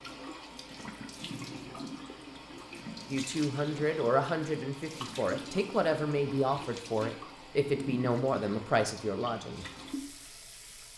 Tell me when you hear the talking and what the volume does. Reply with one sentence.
You can hear the talking from 3.1 to 9.7 s, at a steady volume.